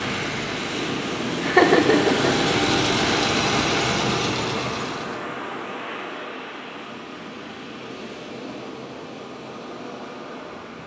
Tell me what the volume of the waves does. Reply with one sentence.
The loudness of the waves goes down.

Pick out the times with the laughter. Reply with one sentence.
You can hear the laughter from 1.4 to 2.4 s.